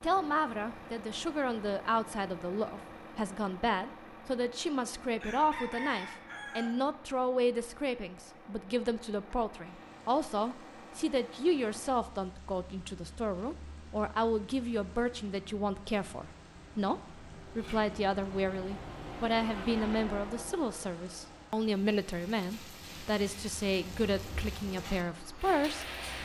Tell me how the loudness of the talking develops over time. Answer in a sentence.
The volume of the talking stays about the same.